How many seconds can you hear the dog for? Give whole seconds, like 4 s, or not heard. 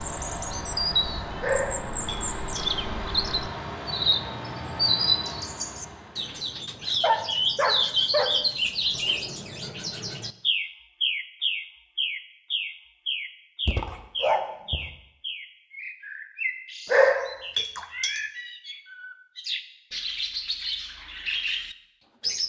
5 s.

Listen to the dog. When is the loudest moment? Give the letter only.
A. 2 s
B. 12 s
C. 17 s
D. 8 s
C.